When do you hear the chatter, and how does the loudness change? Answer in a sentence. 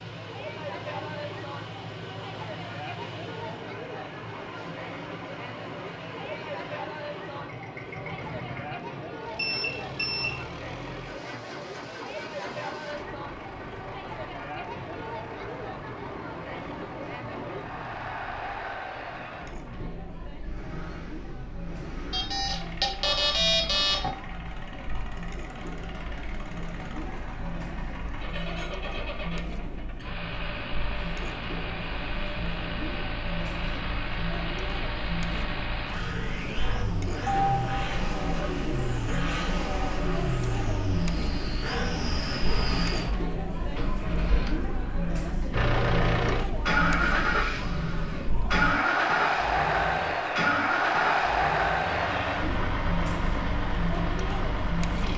The chatter can be heard from 0.0 to 55.1 s, getting louder.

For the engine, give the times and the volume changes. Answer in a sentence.
You can hear the engine from 0.0 to 55.1 s, getting louder.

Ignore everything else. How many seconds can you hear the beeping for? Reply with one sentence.
You can hear the beeping for 4 seconds altogether.